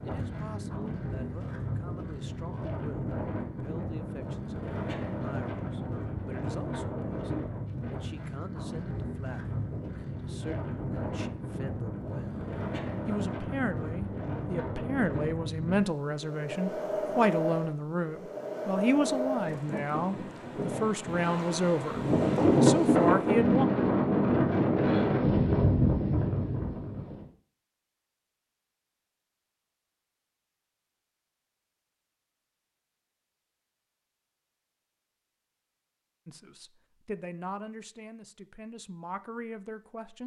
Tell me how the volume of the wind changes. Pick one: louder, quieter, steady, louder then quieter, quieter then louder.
louder.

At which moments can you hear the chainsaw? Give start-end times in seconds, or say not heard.
not heard.